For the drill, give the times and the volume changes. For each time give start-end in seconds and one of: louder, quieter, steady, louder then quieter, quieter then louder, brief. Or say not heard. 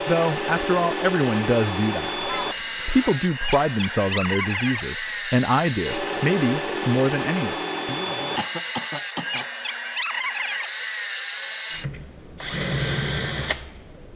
0.0-14.1 steady.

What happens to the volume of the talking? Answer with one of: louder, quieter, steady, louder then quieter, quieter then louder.
steady.